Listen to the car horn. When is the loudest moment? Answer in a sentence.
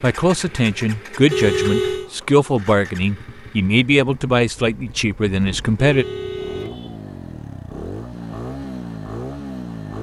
The volume of the car horn peaks at 2 seconds.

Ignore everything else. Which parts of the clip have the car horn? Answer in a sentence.
The car horn can be heard from 1.3 to 2.1 s and from 5.8 to 7.0 s.